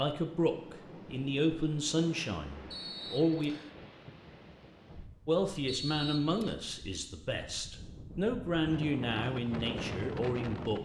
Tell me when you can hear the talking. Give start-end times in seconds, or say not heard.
0.0-3.5, 5.2-10.8.